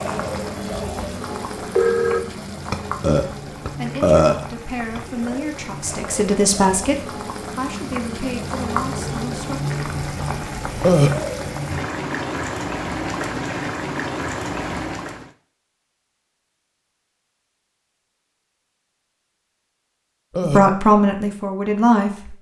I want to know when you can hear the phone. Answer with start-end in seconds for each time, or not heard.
1.3-2.2.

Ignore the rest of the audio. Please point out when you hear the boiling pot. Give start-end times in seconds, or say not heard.
0.0-15.3.